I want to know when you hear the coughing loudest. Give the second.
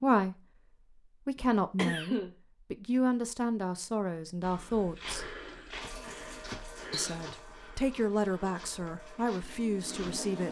2 s.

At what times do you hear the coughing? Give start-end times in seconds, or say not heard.
1.4-2.3, 5.9-7.2.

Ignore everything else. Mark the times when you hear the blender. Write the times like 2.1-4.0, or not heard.
not heard.